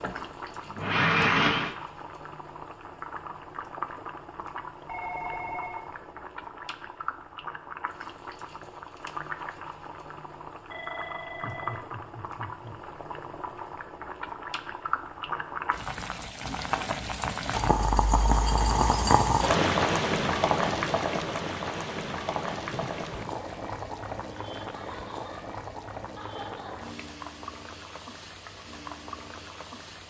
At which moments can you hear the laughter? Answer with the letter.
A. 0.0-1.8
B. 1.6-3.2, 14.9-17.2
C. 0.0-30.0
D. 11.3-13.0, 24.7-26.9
D.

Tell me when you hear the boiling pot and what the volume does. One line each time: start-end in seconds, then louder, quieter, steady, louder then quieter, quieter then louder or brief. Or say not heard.
0.0-30.0 louder then quieter.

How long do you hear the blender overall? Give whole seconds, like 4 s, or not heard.
2 s.